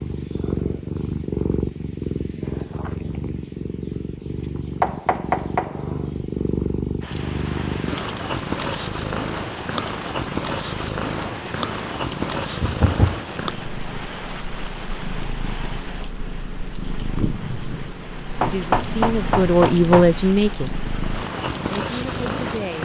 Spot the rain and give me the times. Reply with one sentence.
The rain can be heard from 7.0 to 22.8 s.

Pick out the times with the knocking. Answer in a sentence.
The knocking can be heard from 4.8 to 5.8 s, from 12.6 to 13.2 s and from 18.4 to 20.1 s.